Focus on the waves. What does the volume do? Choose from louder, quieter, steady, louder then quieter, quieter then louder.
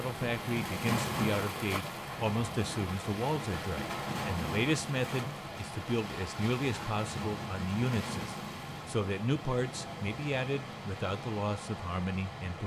quieter.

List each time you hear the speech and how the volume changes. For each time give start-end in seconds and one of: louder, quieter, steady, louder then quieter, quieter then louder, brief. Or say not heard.
0.0-12.6 steady.